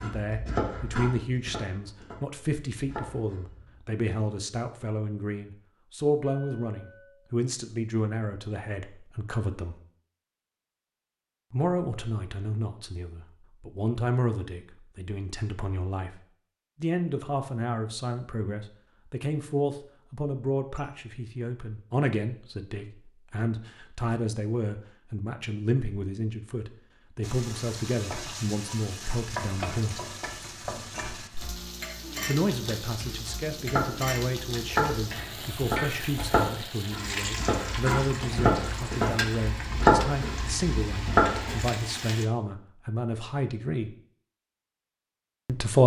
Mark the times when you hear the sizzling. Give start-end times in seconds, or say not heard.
27.2-42.2.